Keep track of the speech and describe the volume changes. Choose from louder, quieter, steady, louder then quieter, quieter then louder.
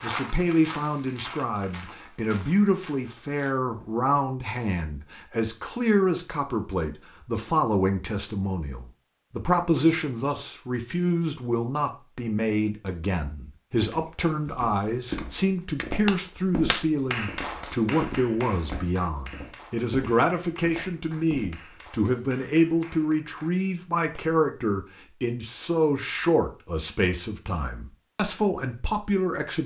steady.